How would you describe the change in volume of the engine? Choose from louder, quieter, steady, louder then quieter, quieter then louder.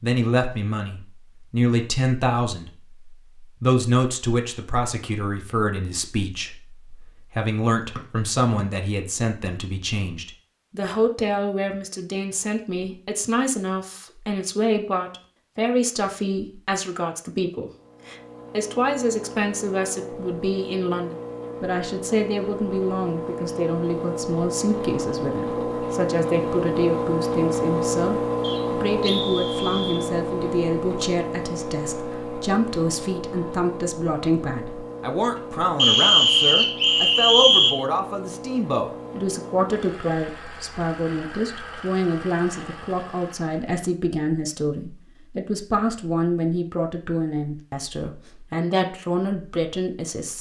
louder then quieter.